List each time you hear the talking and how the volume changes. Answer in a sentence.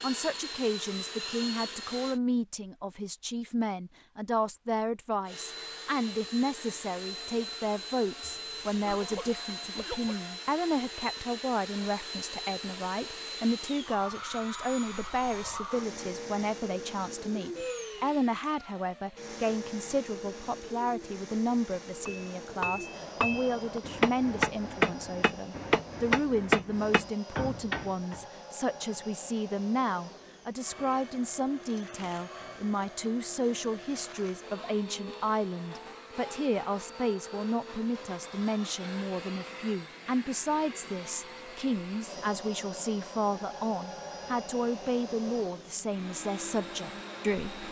You can hear the talking from 0.0 to 47.6 s, at a steady volume.